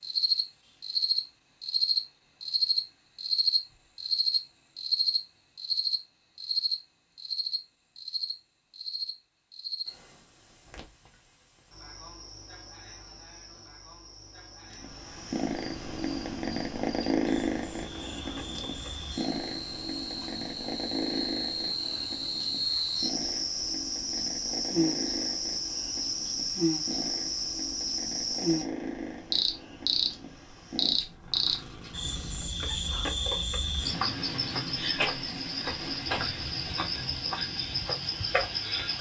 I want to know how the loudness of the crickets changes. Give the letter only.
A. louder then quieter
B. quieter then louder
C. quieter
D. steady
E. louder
B.